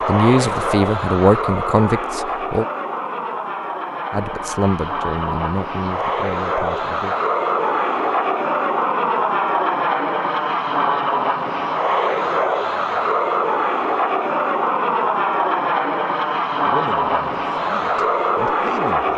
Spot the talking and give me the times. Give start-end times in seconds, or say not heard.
0.1-2.6, 4.1-7.2, 16.6-19.1.